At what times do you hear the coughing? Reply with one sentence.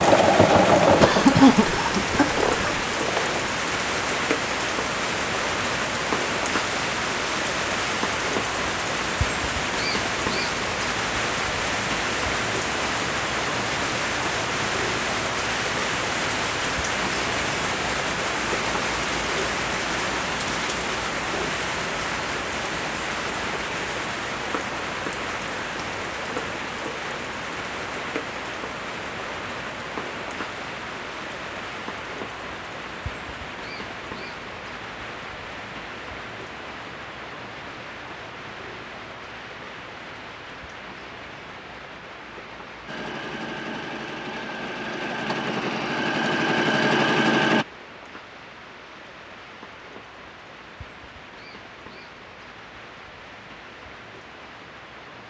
You can hear the coughing from 1.0 to 2.9 s.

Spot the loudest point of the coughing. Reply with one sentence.
The volume of the coughing peaks at 1 second.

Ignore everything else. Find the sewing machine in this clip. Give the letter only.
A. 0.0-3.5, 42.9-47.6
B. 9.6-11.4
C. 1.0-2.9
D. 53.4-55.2
A.